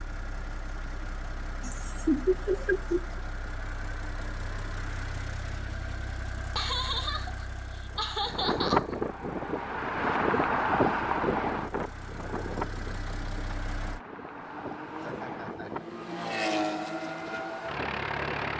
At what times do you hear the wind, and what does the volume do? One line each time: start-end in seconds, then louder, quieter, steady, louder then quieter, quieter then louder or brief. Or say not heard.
7.9-18.5 quieter.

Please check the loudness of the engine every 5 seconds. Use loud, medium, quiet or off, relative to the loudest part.
medium, medium, medium, loud.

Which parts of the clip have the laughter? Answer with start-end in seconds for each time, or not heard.
1.6-3.2, 6.5-8.9, 15.0-15.8.